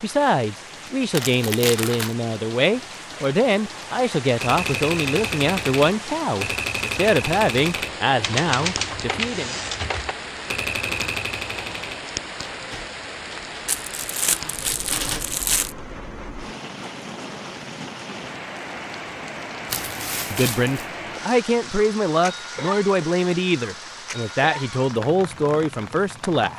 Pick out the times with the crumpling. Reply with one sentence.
You can hear the crumpling from 1.1 to 2.1 s, from 13.7 to 15.8 s and from 19.6 to 20.9 s.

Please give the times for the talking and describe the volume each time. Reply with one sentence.
You can hear the talking from 0.0 to 9.6 s, at a steady volume; and from 20.3 to 26.5 s, at a steady volume.